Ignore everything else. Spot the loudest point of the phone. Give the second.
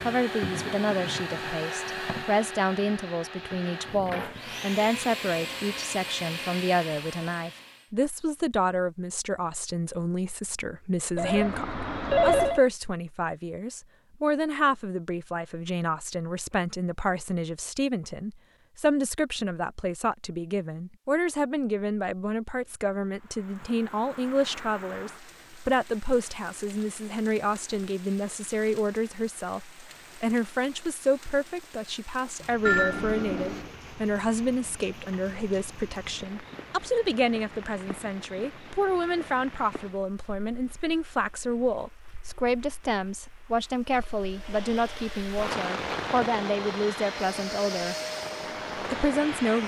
12 s.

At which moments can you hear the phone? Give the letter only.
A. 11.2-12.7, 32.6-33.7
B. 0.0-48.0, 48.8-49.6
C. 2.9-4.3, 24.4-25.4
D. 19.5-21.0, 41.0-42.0
A.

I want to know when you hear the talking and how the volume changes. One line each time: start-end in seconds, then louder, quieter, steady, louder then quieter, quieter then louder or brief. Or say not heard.
0.0-48.0 steady
48.8-49.6 brief.